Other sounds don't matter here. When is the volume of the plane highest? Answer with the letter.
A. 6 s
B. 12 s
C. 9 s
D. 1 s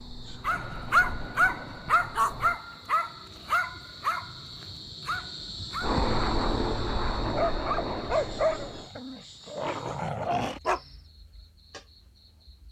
A.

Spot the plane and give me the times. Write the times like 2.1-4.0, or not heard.
0.0-2.6, 5.8-8.9.